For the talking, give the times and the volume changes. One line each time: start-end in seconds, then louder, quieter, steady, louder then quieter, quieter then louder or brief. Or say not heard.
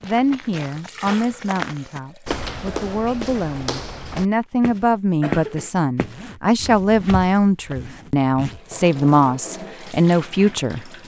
0.0-10.9 louder.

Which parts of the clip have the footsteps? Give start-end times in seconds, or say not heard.
0.0-7.9.